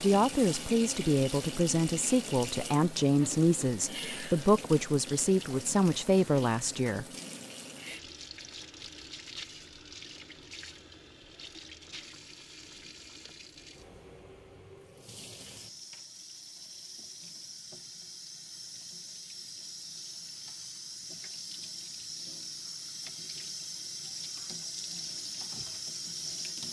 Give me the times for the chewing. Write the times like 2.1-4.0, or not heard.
not heard.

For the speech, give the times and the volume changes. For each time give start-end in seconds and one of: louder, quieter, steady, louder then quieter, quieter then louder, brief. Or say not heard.
0.0-7.0 steady.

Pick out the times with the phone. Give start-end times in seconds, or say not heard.
not heard.